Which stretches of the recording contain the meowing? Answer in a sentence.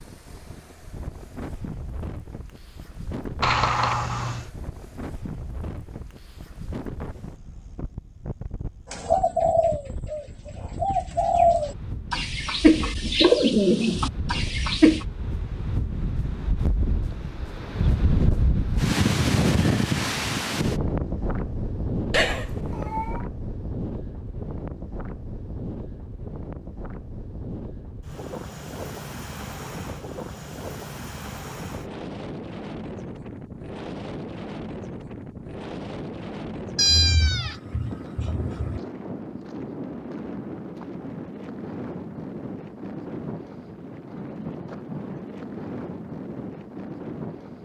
You can hear the meowing from 3.4 to 4.5 s, from 22.1 to 23.2 s and from 36.8 to 38.8 s.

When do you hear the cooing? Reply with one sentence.
The cooing can be heard from 8.9 to 15.1 s.